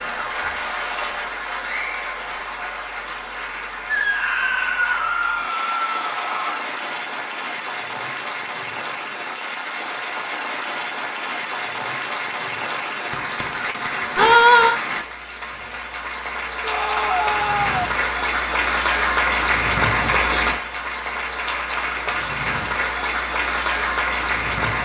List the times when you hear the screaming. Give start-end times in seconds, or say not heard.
3.9-6.7, 14.2-14.8, 16.6-17.9.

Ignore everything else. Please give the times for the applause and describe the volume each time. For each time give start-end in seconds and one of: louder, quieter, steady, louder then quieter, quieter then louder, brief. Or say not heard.
0.0-24.8 louder.